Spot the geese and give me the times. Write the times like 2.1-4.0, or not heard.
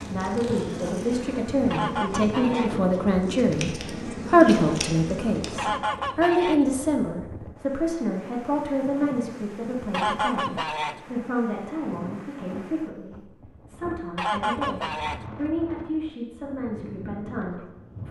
1.7-2.8, 5.5-6.7, 9.9-11.1, 14.2-15.2.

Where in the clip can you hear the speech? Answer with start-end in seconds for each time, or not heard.
0.1-18.0.